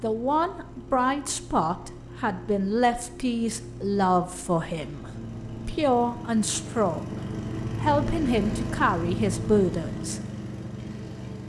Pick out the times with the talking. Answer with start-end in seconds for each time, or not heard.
0.0-7.2, 7.8-10.2.